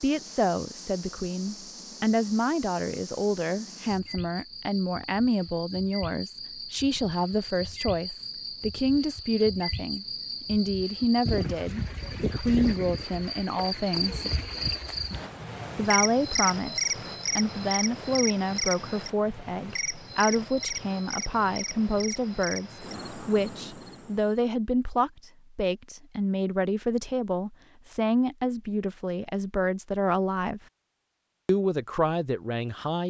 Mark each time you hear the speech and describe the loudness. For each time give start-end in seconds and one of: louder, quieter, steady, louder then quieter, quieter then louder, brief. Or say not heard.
0.0-14.2 steady
15.8-30.6 steady
31.4-33.0 brief.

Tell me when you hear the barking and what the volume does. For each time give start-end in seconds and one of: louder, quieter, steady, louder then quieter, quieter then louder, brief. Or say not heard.
not heard.